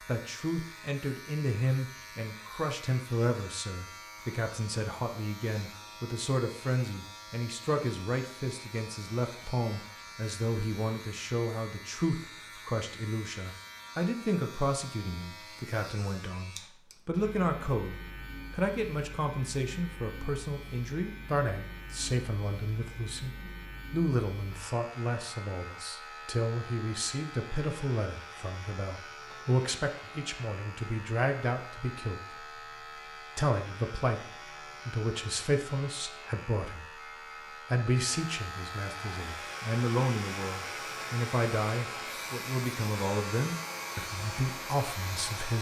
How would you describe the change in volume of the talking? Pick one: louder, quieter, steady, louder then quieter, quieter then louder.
steady.